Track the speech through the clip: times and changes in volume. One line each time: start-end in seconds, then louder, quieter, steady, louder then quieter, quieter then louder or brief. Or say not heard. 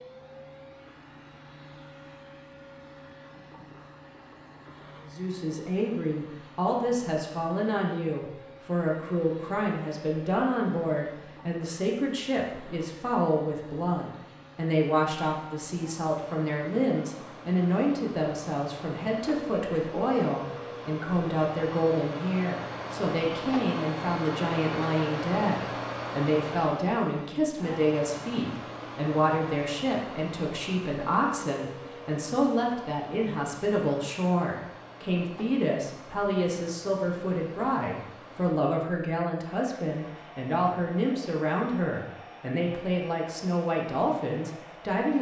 5.1-45.1 steady.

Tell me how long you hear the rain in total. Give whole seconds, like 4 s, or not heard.
not heard.